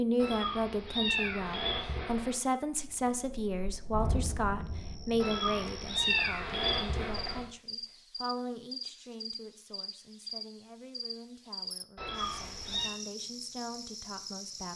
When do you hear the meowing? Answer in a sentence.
You can hear the meowing from 0.2 to 2.4 s, from 5.2 to 7.4 s and from 11.9 to 12.9 s.